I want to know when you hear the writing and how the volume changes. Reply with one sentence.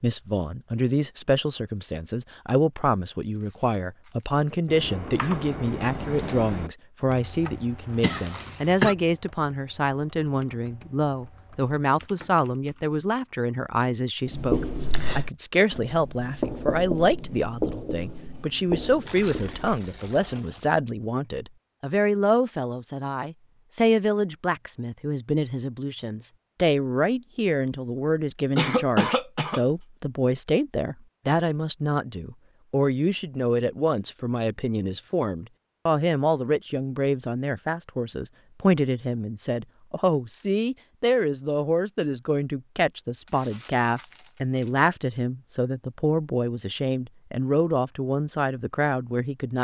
The writing can be heard from 14.3 to 19.8 s, at a steady volume.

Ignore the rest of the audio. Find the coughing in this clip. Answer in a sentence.
The coughing can be heard from 8.0 to 8.9 s and from 28.6 to 29.6 s.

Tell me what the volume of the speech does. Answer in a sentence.
The volume of the speech stays about the same.